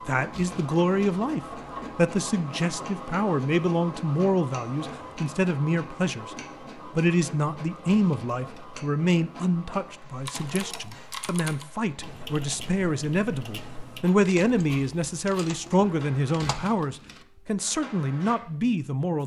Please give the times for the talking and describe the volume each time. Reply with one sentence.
The talking can be heard from 0.1 to 19.2 s, at a steady volume.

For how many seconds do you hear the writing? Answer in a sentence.
You can't hear the writing here.